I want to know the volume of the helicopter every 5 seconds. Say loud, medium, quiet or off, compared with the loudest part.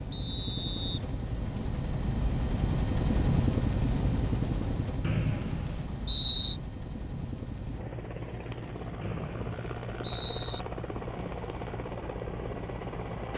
loud, medium, medium.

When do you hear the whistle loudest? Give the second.
6 s.